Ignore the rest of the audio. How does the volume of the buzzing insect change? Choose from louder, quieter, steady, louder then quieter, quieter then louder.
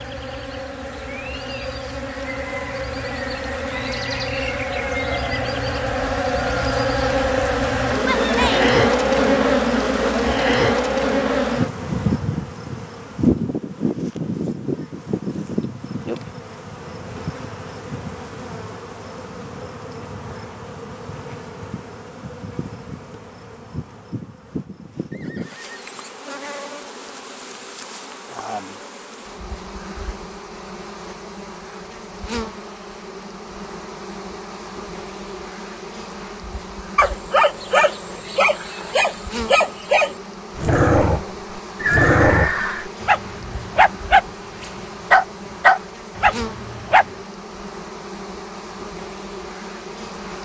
quieter.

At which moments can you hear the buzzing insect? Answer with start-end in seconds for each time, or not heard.
0.0-50.3.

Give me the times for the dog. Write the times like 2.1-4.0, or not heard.
37.0-47.0.